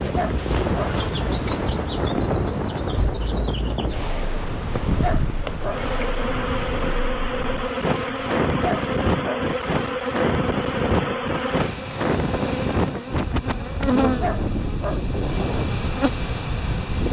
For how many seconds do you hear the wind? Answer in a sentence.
The wind can be heard for 17 seconds in total.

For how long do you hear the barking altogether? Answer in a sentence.
The barking can be heard for 3 seconds in total.